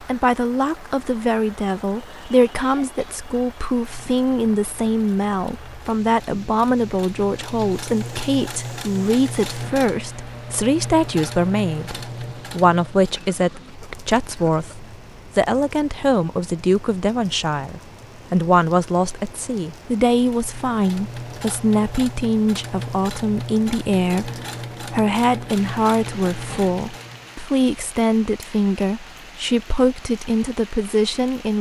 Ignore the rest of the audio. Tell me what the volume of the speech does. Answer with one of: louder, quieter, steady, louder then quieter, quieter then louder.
steady.